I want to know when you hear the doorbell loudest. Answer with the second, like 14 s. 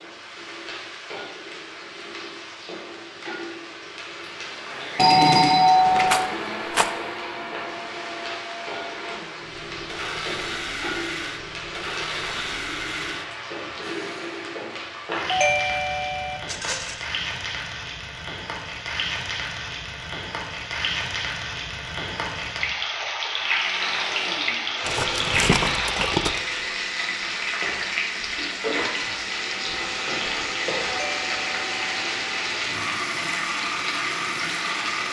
5 s.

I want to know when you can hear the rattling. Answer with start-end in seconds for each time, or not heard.
6.0-6.9, 16.4-17.1, 24.9-26.4.